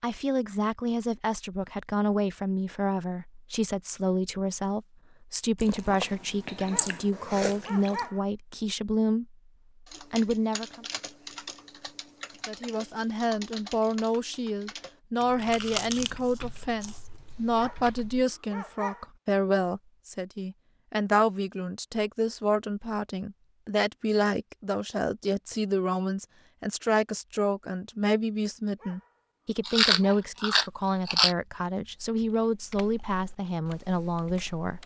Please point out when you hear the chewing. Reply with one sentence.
The chewing can be heard from 5.6 to 8.0 s, from 15.2 to 17.0 s and from 29.6 to 31.4 s.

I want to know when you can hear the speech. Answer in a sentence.
The speech can be heard from 0.0 to 9.3 s, from 10.1 to 10.8 s and from 12.4 to 34.8 s.